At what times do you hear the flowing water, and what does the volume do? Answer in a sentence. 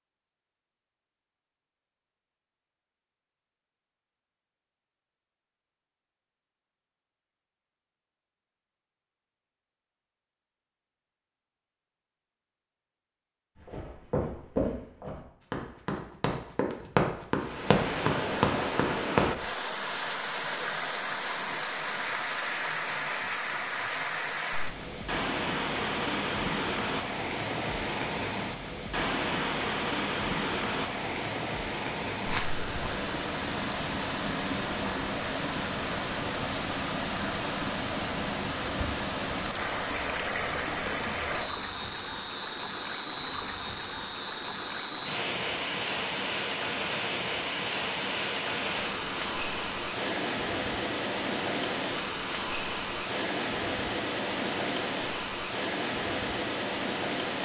You can hear the flowing water from 17.3 to 57.4 s, at a steady volume.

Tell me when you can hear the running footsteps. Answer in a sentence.
You can hear the running footsteps from 13.6 to 19.3 s.